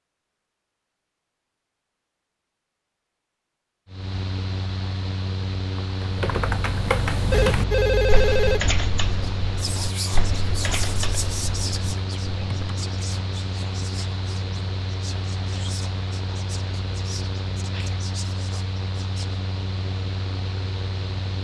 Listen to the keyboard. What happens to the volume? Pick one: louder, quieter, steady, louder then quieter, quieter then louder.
quieter.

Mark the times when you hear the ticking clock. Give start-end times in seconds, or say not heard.
not heard.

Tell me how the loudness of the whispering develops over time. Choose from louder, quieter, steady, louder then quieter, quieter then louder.
quieter.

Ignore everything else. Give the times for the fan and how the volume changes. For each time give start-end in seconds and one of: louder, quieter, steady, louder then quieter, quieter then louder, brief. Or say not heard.
3.9-21.3 steady.